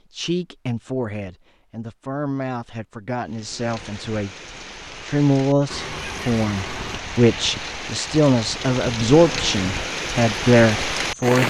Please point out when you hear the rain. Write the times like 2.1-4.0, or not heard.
3.2-11.4.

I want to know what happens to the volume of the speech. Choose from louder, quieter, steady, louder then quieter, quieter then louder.
louder.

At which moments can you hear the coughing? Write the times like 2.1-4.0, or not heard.
5.7-7.2.